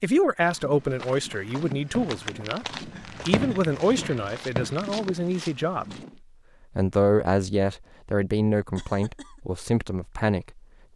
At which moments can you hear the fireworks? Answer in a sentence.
The fireworks can be heard from 1.9 to 4.8 s.